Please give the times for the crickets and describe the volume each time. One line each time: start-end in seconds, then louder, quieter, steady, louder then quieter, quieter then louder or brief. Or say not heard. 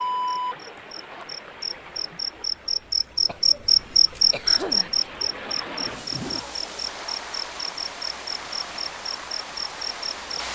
0.0-10.4 louder then quieter.